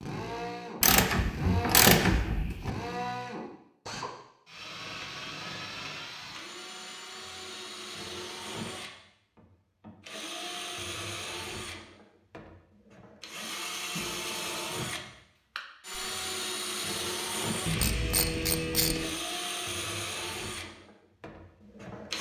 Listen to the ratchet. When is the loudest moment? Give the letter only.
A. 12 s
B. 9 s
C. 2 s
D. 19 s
C.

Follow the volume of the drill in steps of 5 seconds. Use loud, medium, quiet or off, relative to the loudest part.
loud, medium, loud, loud, loud.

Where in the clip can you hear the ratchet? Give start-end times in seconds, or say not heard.
0.8-2.7, 17.6-19.1.